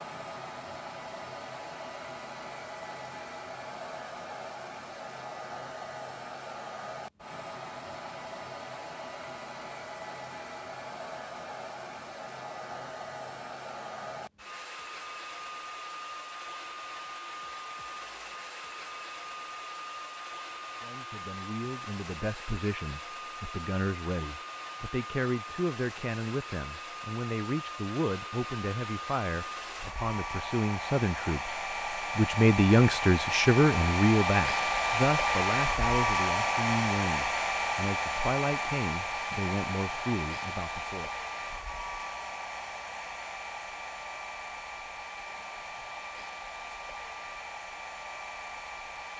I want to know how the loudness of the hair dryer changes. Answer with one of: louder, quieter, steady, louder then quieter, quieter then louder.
louder then quieter.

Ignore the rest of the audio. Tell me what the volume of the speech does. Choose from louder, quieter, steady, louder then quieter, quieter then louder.
louder then quieter.